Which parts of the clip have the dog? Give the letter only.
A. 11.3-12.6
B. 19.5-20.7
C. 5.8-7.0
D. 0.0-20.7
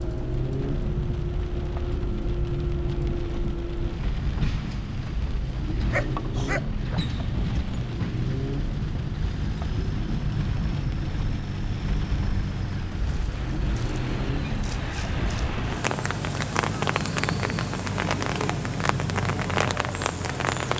C.